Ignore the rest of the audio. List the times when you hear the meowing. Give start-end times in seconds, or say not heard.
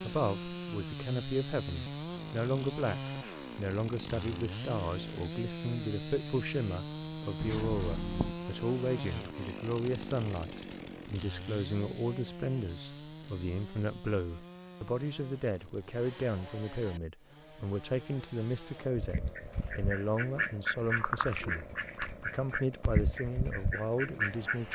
7.4-8.3.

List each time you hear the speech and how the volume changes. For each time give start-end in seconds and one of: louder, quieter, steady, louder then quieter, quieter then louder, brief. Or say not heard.
0.0-24.7 steady.